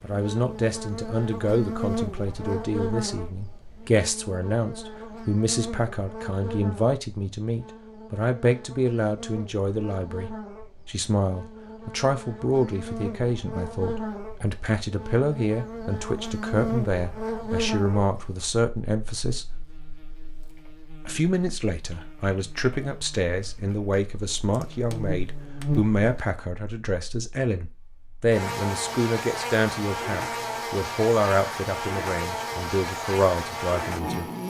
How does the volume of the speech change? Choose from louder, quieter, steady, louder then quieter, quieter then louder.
steady.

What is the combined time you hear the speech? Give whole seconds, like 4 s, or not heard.
33 s.